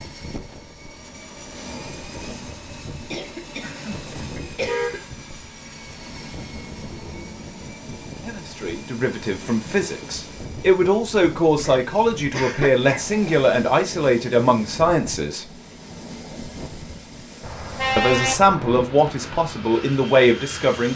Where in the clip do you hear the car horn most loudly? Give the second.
18 s.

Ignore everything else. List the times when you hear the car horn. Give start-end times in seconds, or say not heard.
3.6-5.0, 17.4-18.9.